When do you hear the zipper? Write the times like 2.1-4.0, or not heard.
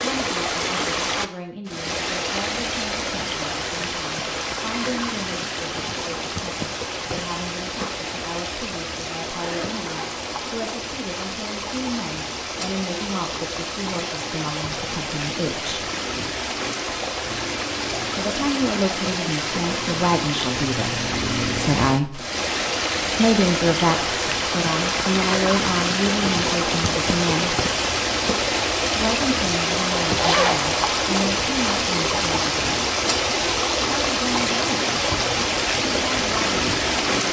9.2-10.6, 30.1-30.6.